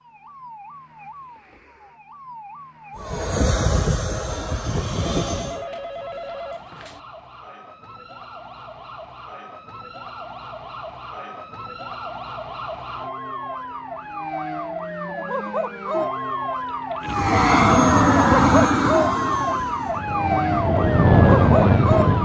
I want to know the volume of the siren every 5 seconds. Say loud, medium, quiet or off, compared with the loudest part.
quiet, quiet, medium, loud, loud.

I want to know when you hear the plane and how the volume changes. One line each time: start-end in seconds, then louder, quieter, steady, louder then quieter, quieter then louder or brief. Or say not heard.
3.0-5.7 brief
17.1-22.1 quieter then louder.